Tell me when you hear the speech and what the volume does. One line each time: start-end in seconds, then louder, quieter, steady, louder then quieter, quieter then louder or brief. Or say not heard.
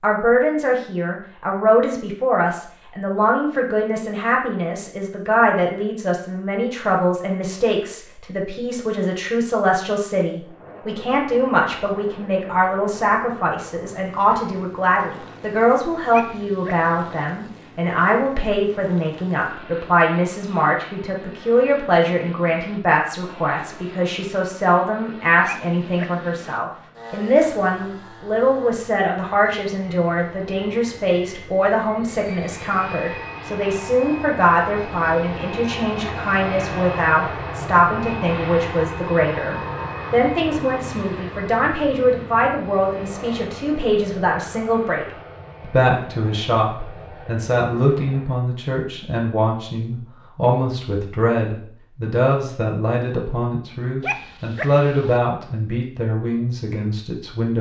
0.0-57.5 steady.